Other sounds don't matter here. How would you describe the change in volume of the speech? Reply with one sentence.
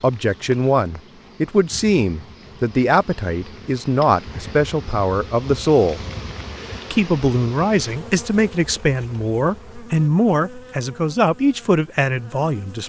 The loudness of the speech stays about the same.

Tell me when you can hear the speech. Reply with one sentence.
You can hear the speech from 0.0 to 6.0 s and from 6.9 to 12.8 s.